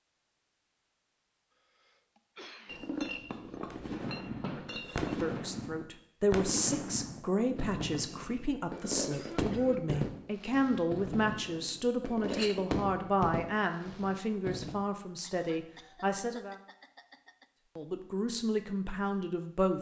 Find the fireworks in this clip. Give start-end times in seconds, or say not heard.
3.6-14.8.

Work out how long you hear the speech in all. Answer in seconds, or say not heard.
14 s.